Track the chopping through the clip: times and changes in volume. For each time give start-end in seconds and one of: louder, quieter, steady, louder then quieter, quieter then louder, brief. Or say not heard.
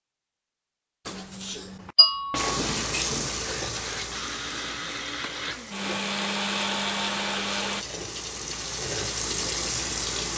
not heard.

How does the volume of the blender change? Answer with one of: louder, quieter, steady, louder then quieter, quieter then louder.
louder.